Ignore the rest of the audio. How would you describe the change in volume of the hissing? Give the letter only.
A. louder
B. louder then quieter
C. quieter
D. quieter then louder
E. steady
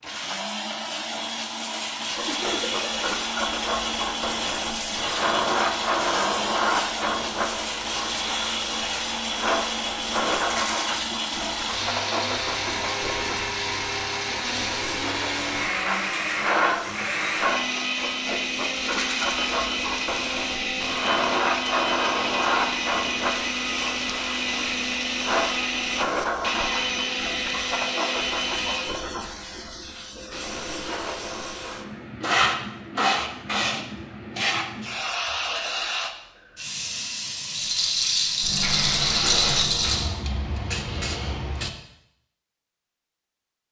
E.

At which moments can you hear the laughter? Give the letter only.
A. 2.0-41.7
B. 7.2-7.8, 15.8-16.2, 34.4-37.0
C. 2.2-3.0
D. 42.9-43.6
C.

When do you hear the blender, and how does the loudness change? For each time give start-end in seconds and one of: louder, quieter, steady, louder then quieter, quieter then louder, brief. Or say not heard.
0.0-29.0 steady.